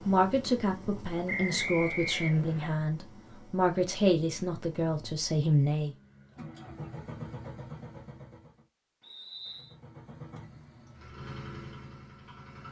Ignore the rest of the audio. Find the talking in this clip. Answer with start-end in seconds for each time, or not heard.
0.1-6.0.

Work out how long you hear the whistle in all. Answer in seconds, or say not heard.
2 s.